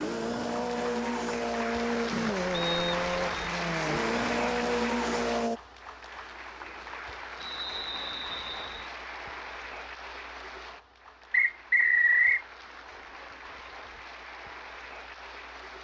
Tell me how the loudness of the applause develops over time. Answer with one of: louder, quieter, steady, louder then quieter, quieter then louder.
quieter.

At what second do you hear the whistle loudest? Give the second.
12 s.